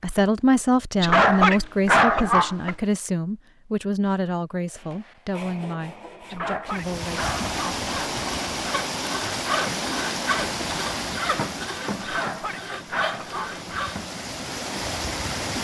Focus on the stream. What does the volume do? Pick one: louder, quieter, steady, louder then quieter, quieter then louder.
quieter then louder.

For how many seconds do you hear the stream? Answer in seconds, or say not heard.
9 s.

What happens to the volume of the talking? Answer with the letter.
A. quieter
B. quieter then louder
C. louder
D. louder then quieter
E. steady
A.